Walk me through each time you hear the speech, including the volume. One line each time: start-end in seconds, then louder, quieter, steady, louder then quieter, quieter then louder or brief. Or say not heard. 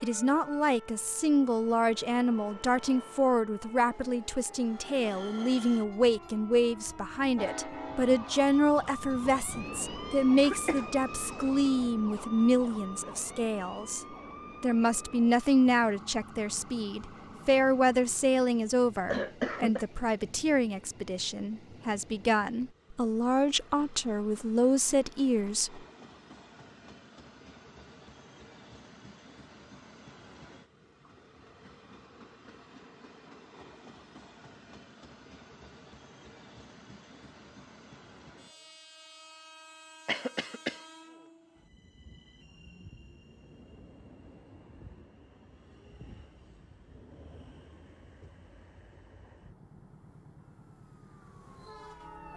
0.0-25.8 steady.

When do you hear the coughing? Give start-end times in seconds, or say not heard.
10.4-11.7, 19.1-19.9, 40.0-40.9.